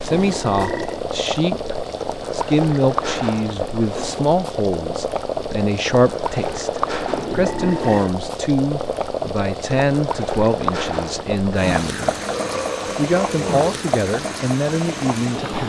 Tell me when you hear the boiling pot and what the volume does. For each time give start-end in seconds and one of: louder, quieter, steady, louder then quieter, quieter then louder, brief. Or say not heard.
0.0-15.6 steady.